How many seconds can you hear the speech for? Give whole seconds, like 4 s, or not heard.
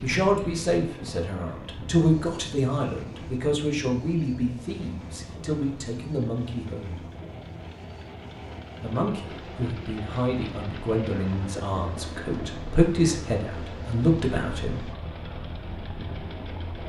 13 s.